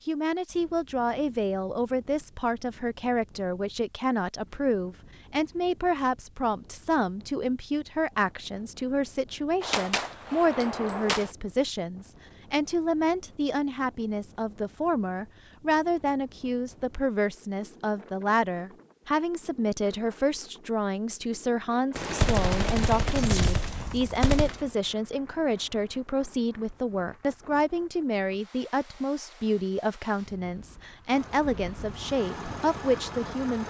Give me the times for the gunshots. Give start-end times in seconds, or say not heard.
9.6-11.3, 21.9-24.7.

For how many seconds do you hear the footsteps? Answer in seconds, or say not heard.
not heard.